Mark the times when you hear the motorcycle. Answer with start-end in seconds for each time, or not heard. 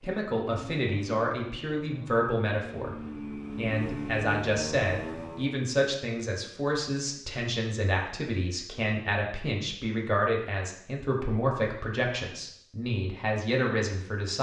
0.0-5.6.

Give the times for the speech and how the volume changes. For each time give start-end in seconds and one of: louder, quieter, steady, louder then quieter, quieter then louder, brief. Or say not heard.
0.0-14.3 steady.